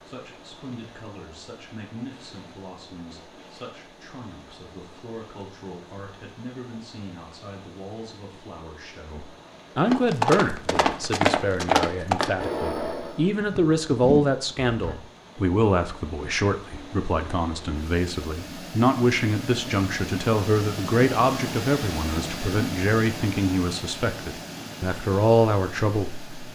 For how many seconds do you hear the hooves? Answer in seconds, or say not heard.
5 s.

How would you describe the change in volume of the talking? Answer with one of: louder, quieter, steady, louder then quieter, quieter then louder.
louder.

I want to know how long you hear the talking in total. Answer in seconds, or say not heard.
26 s.